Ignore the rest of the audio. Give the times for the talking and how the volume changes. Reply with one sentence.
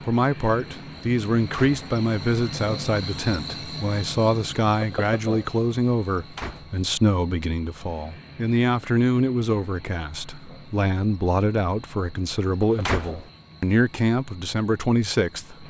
The talking can be heard from 0.1 to 15.6 s, at a steady volume.